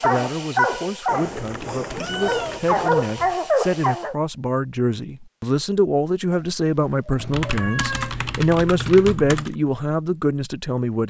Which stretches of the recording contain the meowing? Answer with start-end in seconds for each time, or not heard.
1.1-2.6, 6.3-8.2.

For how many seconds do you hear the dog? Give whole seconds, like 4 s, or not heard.
4 s.